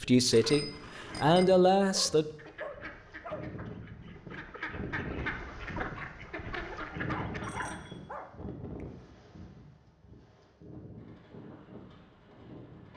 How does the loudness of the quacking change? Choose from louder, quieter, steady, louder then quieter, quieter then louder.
louder.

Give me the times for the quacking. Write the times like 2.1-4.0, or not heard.
2.4-7.9.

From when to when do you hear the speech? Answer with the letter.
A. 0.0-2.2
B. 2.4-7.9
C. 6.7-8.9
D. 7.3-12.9
A.